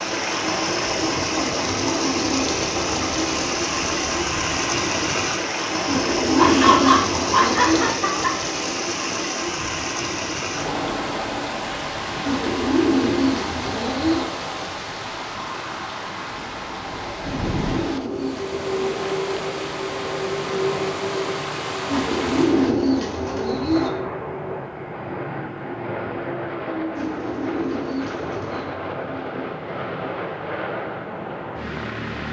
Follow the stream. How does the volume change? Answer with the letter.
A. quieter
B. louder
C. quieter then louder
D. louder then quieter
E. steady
A.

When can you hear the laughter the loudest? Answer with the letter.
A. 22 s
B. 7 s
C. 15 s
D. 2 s
B.